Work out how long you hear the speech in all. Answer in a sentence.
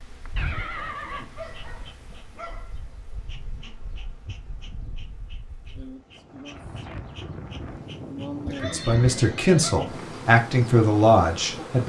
The speech can be heard for 3 seconds in total.